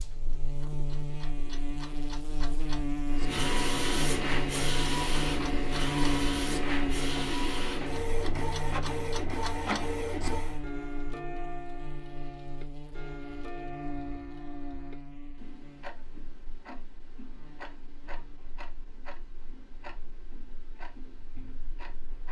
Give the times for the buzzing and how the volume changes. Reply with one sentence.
The buzzing can be heard from 0.0 to 22.2 s, getting quieter.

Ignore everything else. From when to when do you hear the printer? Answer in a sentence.
The printer can be heard from 3.1 to 10.6 s.